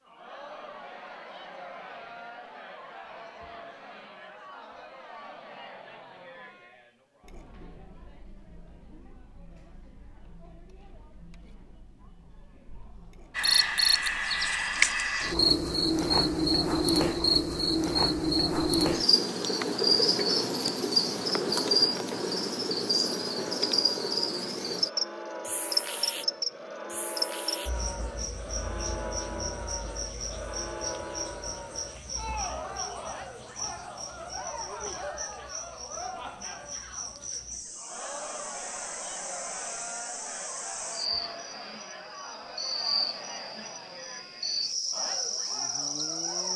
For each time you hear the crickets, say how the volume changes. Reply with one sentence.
You can hear the crickets from 13.3 to 46.5 s, getting quieter then louder.